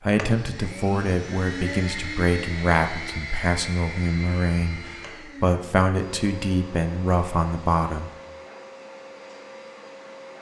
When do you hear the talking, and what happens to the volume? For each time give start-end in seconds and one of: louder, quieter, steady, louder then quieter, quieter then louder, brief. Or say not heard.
0.0-8.1 steady.